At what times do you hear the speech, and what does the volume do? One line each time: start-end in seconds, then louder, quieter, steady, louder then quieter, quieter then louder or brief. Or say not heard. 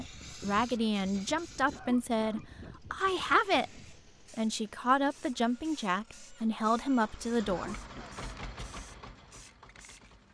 0.0-7.8 steady.